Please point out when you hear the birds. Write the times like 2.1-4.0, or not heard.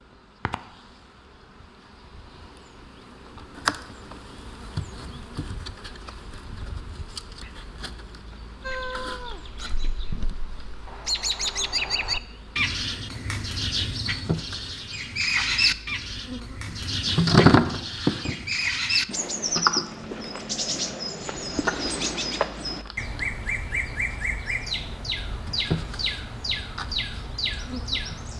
8.6-28.3.